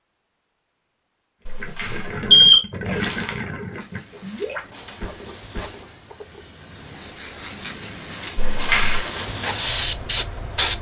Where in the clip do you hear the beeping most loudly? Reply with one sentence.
The volume of the beeping peaks at 2 seconds.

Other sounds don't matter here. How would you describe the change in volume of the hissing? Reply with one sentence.
The loudness of the hissing goes up.